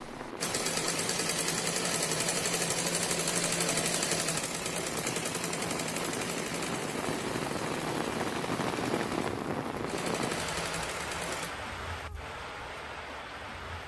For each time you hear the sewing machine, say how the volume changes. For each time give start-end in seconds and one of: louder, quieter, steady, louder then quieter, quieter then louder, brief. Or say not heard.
0.0-11.6 quieter.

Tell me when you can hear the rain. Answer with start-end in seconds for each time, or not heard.
0.0-13.8.